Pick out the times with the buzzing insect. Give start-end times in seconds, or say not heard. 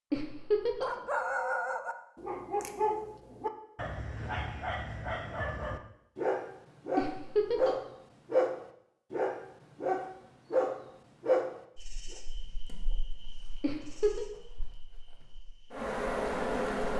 11.8-16.9.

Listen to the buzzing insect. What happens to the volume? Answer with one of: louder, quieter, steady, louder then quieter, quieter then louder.
quieter then louder.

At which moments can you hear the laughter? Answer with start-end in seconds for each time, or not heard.
0.1-0.9, 7.0-7.8, 13.6-14.2.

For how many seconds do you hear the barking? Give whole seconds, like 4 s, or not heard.
11 s.